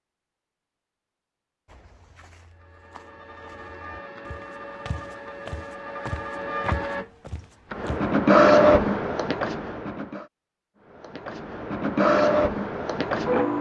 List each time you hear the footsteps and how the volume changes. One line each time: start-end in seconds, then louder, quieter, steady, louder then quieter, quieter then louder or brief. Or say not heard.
1.6-8.1 louder.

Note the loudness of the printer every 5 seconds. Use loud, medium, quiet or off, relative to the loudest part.
quiet, loud, loud.